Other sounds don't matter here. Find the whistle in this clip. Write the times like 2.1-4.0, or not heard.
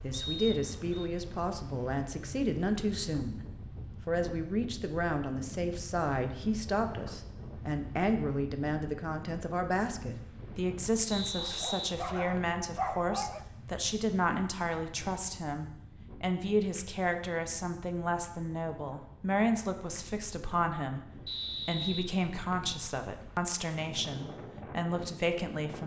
0.1-1.1, 11.1-12.6, 21.2-22.8.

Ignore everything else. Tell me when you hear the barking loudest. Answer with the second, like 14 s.
13 s.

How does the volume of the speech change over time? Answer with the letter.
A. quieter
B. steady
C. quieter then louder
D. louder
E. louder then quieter
B.